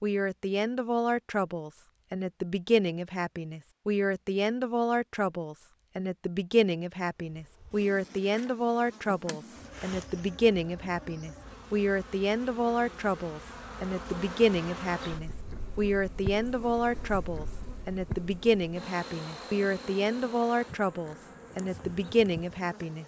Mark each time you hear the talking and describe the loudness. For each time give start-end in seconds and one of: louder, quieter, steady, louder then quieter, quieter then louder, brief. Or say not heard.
0.0-23.0 steady.